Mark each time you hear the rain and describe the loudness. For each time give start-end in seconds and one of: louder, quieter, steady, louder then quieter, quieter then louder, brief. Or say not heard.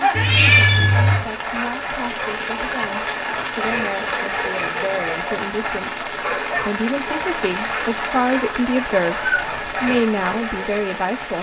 0.0-11.3 steady.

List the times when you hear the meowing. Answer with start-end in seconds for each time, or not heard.
0.1-1.2, 9.2-9.7.